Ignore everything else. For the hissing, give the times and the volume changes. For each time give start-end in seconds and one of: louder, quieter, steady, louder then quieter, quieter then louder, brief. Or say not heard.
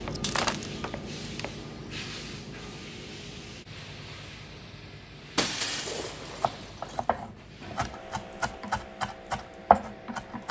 0.0-10.4 quieter.